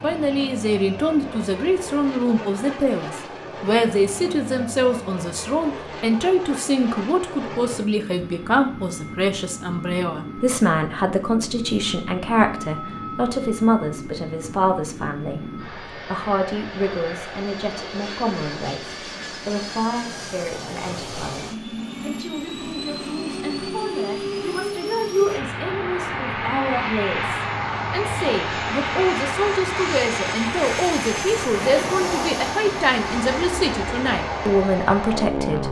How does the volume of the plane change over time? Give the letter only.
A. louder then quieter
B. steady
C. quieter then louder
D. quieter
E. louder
E.